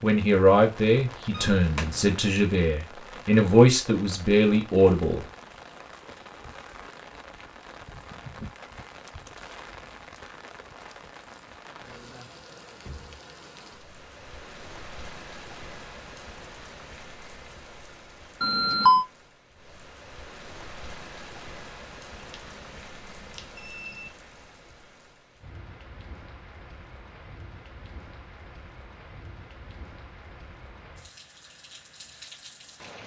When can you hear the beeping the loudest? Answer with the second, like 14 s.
19 s.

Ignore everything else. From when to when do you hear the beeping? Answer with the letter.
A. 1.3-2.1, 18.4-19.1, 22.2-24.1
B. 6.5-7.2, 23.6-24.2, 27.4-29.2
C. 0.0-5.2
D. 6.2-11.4
A.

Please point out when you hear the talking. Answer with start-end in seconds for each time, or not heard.
0.0-5.2.